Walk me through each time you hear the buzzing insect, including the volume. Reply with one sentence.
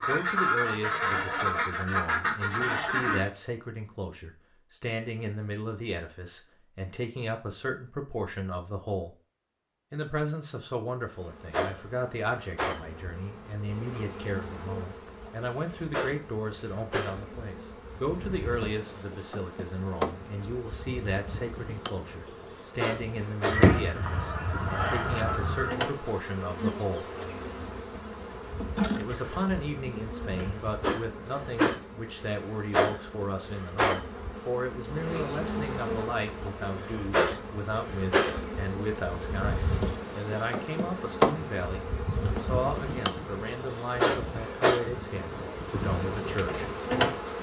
You can hear the buzzing insect from 11.1 to 47.3 s, getting louder.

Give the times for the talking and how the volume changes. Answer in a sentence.
You can hear the talking from 0.0 to 9.2 s, at a steady volume; from 9.9 to 27.1 s, at a steady volume; and from 28.9 to 46.6 s, at a steady volume.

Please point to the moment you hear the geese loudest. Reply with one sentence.
The loudest moment of the geese is at 24 seconds.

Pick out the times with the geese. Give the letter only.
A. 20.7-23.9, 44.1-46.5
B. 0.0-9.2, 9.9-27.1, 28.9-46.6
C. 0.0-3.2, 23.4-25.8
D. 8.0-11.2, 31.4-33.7
C.